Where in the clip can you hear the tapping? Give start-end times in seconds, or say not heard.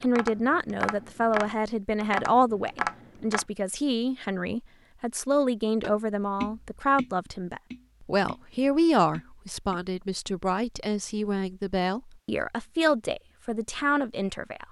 0.0-3.5, 5.8-9.8.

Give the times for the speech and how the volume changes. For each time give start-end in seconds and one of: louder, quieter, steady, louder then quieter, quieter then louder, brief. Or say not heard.
0.0-14.6 steady.